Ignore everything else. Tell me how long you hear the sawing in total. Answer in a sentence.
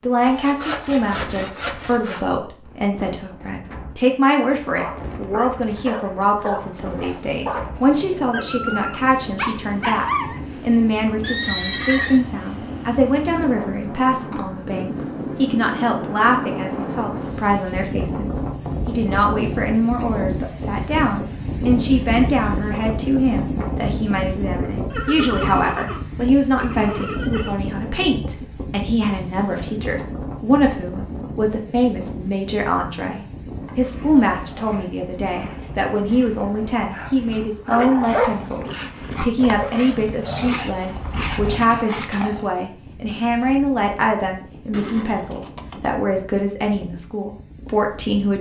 You can hear the sawing for 2 seconds altogether.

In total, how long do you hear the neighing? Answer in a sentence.
The neighing can be heard for 5 seconds in total.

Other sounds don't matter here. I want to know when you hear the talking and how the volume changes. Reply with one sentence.
The talking can be heard from 0.0 to 48.3 s, at a steady volume.